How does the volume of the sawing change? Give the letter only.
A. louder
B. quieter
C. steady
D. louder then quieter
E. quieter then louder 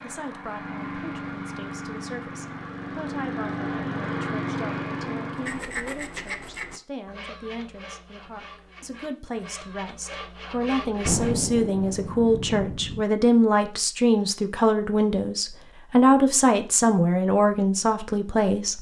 E.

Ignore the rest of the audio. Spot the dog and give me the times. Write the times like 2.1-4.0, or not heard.
not heard.